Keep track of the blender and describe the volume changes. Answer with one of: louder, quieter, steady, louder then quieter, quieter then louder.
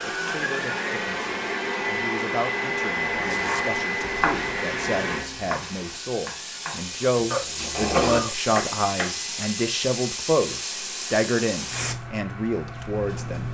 quieter.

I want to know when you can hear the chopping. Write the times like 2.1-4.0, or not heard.
3.1-9.4.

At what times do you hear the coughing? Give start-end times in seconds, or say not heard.
7.3-8.3.